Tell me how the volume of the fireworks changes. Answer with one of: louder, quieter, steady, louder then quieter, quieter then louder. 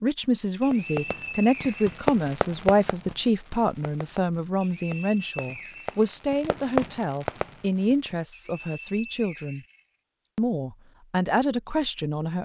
quieter then louder.